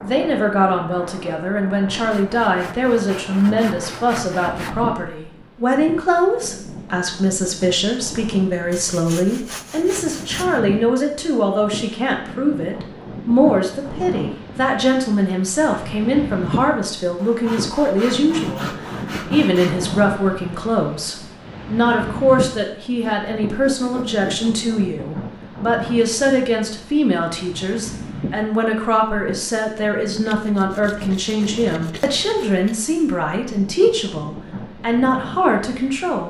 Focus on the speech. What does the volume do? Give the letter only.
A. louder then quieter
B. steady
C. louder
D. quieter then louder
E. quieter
B.